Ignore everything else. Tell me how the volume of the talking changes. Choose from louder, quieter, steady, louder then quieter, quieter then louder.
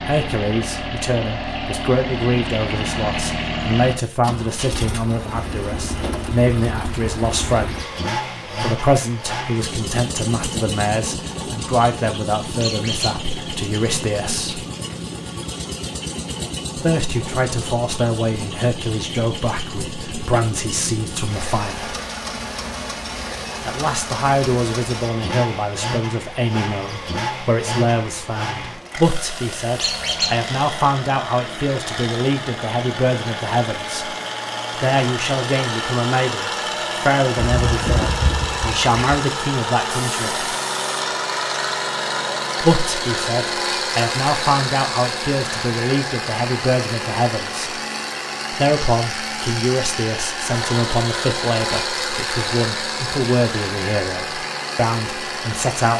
steady.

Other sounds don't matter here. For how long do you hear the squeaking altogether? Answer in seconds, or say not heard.
3 s.